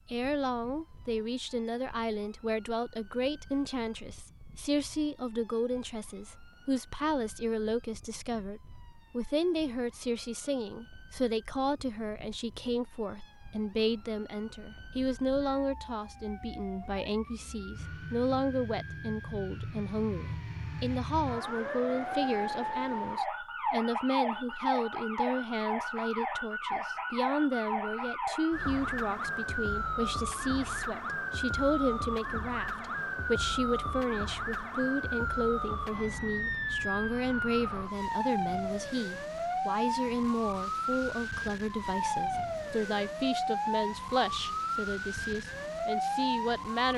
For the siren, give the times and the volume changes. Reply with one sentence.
The siren can be heard from 0.0 to 46.9 s, getting louder.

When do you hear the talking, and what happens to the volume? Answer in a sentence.
You can hear the talking from 0.1 to 46.9 s, at a steady volume.